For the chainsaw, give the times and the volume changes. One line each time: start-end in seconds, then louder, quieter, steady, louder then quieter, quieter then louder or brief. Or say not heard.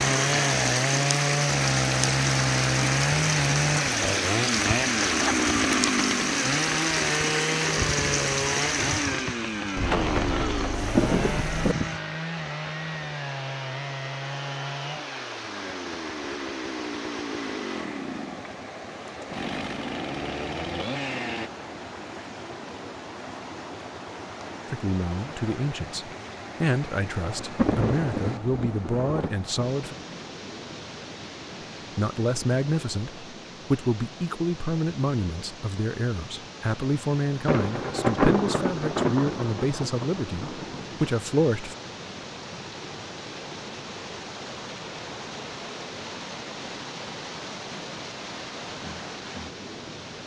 0.0-21.5 quieter.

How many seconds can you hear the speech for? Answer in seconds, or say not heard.
15 s.